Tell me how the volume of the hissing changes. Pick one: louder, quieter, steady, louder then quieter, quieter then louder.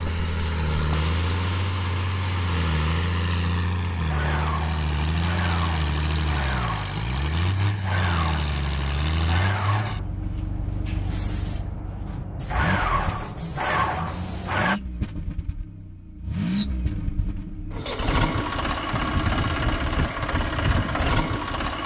louder.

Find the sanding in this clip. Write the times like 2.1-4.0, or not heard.
not heard.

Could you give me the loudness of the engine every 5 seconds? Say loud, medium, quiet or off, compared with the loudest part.
loud, loud, medium, loud, loud.